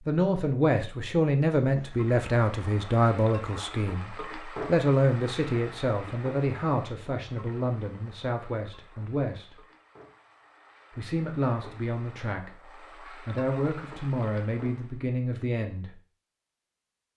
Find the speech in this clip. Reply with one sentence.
You can hear the speech from 0.1 to 9.6 s and from 10.9 to 15.9 s.